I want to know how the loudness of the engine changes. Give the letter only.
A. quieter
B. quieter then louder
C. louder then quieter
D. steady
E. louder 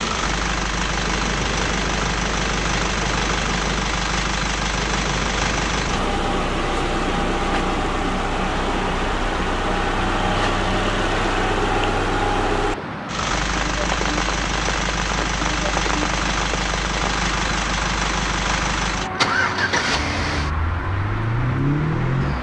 D.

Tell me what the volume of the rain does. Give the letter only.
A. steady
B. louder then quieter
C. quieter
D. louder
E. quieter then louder
A.